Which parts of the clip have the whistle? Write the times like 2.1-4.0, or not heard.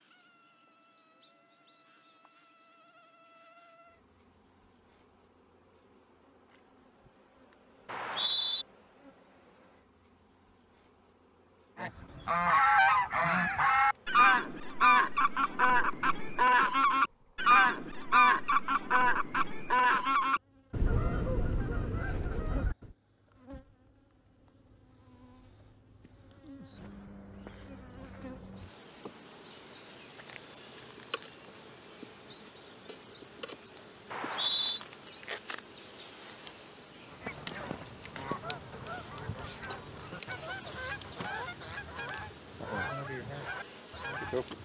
7.8-8.7, 34.1-34.8.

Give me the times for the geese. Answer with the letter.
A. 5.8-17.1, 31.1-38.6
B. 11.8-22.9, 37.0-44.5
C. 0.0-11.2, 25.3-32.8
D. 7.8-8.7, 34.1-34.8
B.